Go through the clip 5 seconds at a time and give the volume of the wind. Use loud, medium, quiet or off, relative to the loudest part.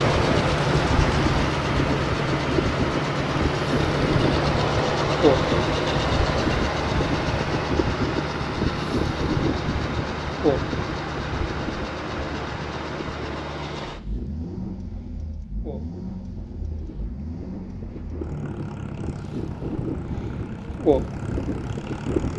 loud, loud, medium, medium, loud.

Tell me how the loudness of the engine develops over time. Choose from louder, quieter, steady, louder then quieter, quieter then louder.
quieter.